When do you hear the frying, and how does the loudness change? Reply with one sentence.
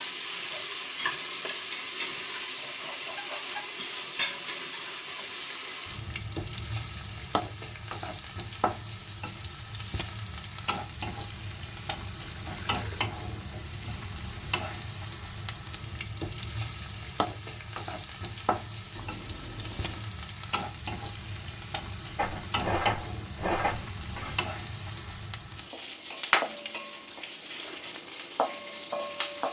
You can hear the frying from 0.0 to 29.4 s, at a steady volume.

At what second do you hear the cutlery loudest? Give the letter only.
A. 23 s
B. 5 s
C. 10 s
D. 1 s
A.